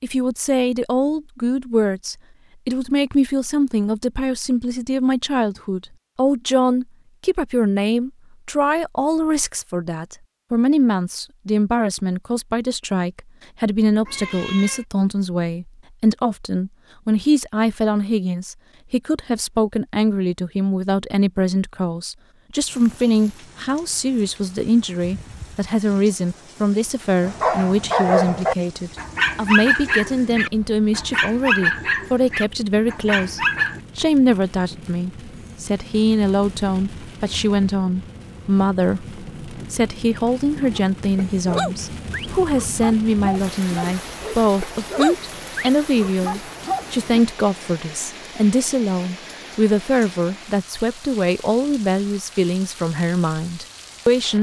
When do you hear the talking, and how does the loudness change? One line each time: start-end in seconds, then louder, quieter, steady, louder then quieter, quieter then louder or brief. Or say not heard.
0.0-54.3 steady.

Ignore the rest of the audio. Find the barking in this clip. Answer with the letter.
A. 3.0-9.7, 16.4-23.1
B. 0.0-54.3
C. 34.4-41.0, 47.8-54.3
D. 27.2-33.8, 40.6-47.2
D.